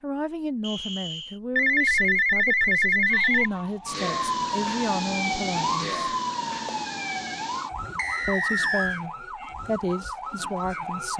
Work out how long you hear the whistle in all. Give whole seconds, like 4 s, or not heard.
2 s.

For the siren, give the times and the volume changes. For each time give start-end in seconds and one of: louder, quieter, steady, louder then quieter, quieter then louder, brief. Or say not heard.
3.0-11.1 quieter.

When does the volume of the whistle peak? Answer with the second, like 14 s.
9 s.